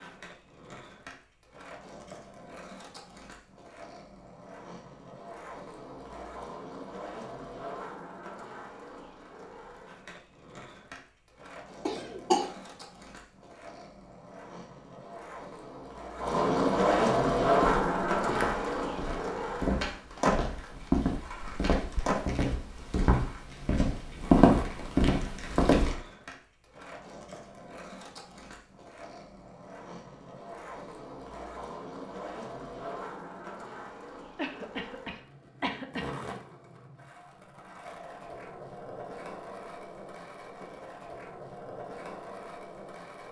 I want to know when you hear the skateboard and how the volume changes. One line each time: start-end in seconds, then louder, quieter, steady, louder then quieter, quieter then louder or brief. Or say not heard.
0.0-43.2 louder then quieter.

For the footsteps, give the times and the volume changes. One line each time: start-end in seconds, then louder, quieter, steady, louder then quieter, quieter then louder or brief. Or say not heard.
17.5-25.9 louder.